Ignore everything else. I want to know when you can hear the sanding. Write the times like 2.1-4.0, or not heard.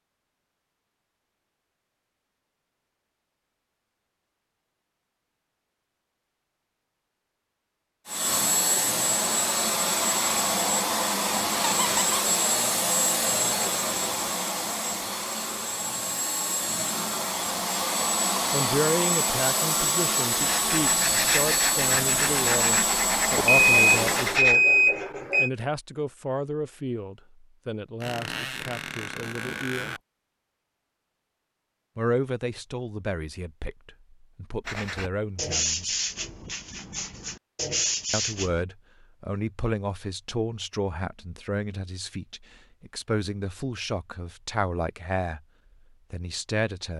20.3-24.6, 34.6-38.6.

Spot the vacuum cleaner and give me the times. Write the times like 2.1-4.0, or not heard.
8.1-24.4.